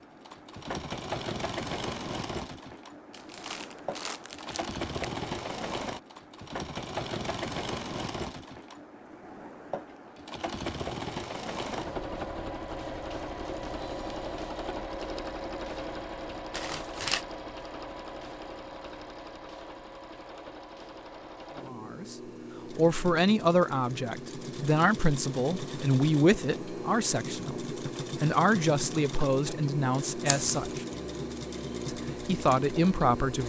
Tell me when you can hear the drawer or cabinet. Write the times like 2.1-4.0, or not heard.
not heard.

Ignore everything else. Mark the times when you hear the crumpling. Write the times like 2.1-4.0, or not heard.
3.1-5.1, 16.5-17.2, 30.2-30.8.